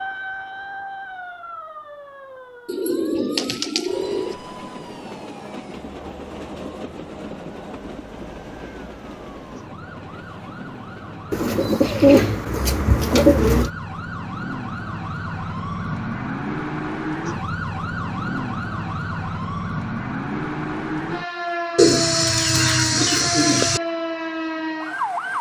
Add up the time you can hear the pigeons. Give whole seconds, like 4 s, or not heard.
6 s.